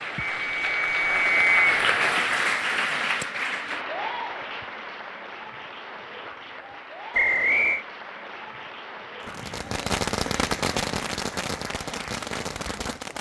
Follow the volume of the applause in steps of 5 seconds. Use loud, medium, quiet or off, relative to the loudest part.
loud, quiet, quiet.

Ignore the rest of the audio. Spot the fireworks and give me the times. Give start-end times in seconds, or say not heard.
9.2-13.1.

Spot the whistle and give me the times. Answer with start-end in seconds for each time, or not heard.
0.2-1.6, 7.1-7.8.